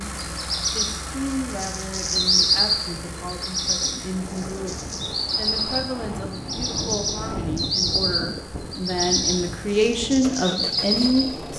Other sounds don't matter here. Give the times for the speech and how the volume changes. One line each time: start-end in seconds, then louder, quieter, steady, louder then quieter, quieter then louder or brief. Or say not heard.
0.0-11.5 louder.